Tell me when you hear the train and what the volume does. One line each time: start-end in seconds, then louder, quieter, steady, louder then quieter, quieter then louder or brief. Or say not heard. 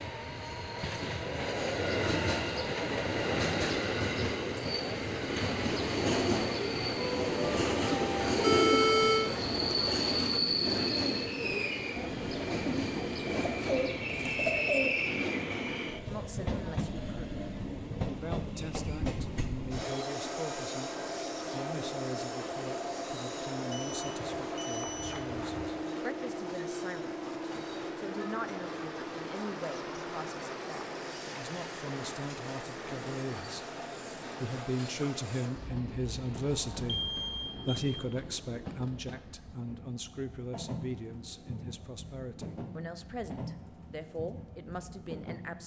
0.0-45.6 quieter.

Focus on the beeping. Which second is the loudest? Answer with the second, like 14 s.
9 s.